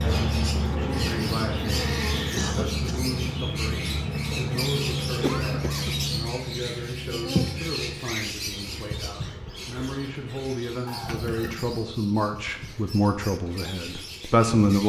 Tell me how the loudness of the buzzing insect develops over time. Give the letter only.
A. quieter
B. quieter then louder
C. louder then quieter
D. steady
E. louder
A.